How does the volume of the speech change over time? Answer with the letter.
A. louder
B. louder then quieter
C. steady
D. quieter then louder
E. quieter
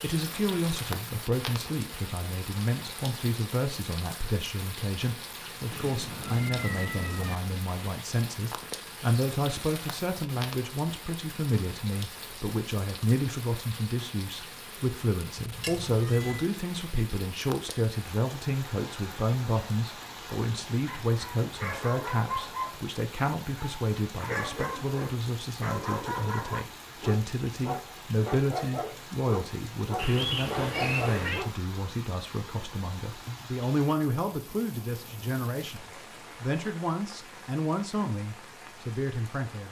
C.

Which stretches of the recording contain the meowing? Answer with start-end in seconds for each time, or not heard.
5.7-7.3, 15.3-16.5, 29.9-31.4.